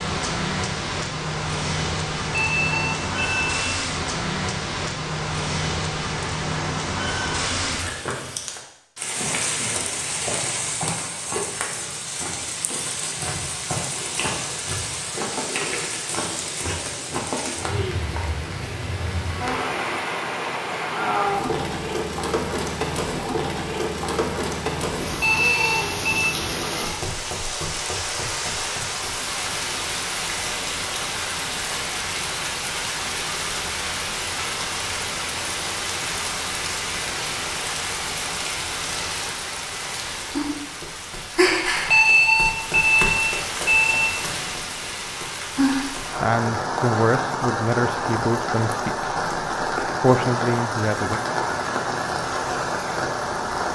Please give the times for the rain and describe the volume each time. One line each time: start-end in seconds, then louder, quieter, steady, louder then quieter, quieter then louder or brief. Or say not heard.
0.0-53.6 steady.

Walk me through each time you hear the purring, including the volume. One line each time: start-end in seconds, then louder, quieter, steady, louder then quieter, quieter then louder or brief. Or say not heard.
not heard.